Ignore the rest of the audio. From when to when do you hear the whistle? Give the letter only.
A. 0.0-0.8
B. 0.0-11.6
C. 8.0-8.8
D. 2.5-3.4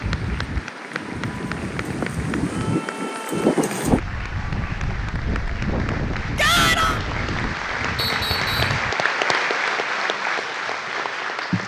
C.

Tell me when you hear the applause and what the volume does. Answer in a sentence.
You can hear the applause from 0.0 to 11.6 s, getting louder.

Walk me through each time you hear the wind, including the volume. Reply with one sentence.
The wind can be heard from 0.0 to 8.9 s, getting louder then quieter.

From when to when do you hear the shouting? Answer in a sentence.
The shouting can be heard from 6.3 to 7.0 s.